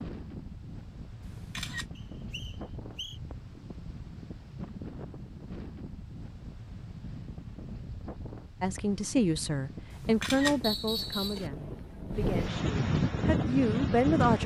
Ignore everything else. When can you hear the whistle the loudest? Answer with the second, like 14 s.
11 s.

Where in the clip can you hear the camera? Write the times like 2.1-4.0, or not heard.
1.2-1.9, 9.9-11.5.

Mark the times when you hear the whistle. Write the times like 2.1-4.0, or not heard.
1.9-3.2, 10.6-11.4.